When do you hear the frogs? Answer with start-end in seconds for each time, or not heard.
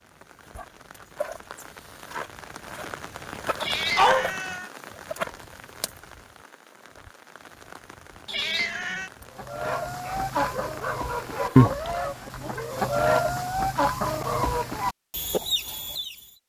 not heard.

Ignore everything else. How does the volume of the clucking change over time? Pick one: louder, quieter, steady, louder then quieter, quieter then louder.
louder then quieter.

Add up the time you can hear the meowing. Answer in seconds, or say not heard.
2 s.